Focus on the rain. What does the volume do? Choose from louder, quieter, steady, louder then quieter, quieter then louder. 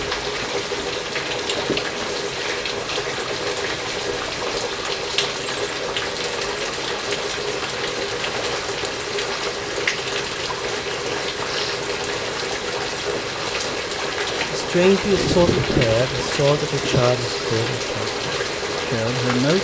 steady.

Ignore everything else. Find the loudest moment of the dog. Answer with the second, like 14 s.
16 s.